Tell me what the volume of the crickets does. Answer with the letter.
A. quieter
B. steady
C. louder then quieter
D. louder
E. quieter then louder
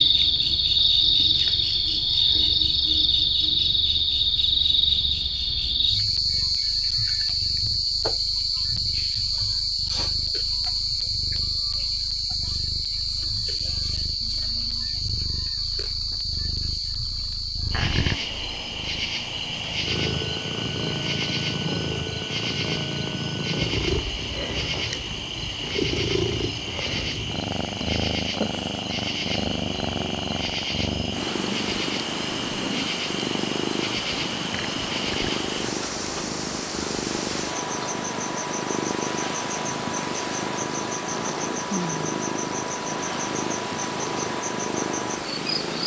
A.